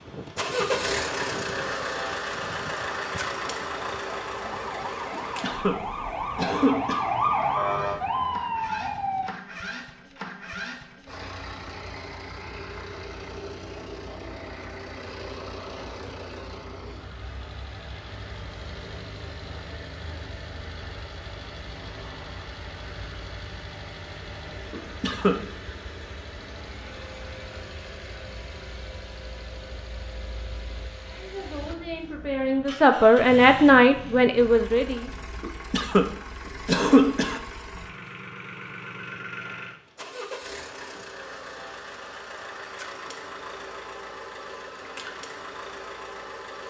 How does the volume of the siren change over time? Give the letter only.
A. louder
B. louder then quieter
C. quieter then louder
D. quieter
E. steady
A.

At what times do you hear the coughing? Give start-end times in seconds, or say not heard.
5.1-5.8, 6.3-7.0, 24.7-25.4, 35.4-36.0, 36.6-37.4.